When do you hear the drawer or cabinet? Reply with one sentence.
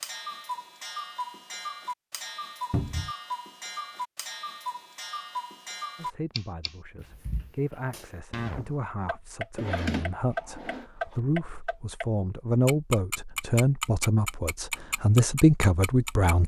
You can hear the drawer or cabinet from 2.7 to 3.1 s and from 9.6 to 10.8 s.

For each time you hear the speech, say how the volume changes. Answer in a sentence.
You can hear the speech from 6.0 to 16.4 s, getting louder.